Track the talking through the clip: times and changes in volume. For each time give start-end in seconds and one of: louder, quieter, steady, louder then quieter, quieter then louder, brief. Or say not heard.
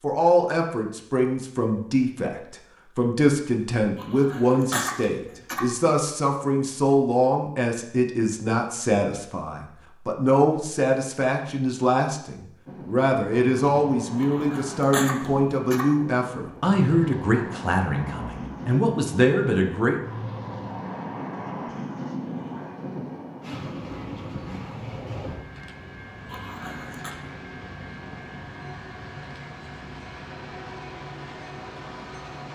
0.0-20.1 steady.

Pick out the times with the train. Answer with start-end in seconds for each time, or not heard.
12.7-32.5.